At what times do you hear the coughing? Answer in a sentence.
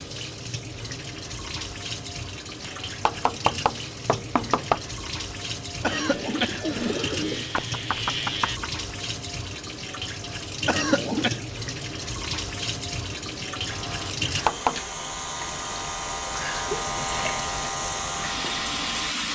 You can hear the coughing from 5.8 to 7.5 s and from 10.7 to 11.4 s.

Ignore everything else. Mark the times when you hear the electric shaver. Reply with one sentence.
The electric shaver can be heard from 5.9 to 8.6 s and from 13.7 to 19.2 s.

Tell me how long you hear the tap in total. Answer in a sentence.
You can hear the tap for 19 seconds altogether.